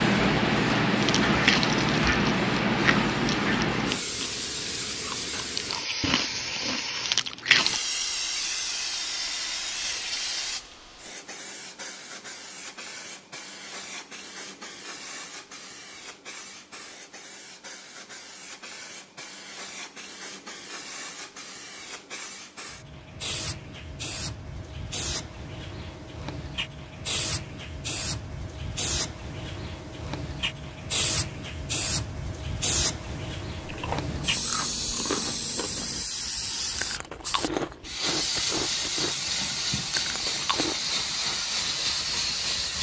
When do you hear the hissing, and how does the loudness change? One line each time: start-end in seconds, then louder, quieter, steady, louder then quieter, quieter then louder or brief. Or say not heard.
0.0-42.7 quieter then louder.